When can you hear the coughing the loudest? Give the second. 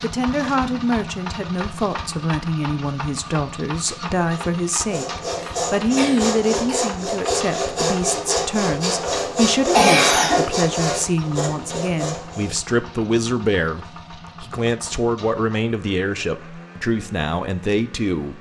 10 s.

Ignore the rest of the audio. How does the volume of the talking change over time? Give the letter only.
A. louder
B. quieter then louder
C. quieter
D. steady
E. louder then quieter
D.